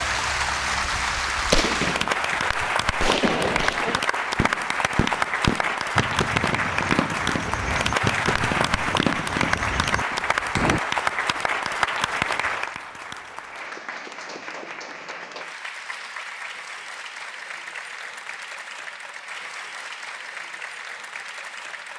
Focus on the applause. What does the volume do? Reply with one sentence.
The loudness of the applause goes down.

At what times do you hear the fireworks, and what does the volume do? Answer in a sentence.
The fireworks can be heard from 0.8 to 10.8 s, at a steady volume.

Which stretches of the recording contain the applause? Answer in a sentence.
You can hear the applause from 0.0 to 21.9 s.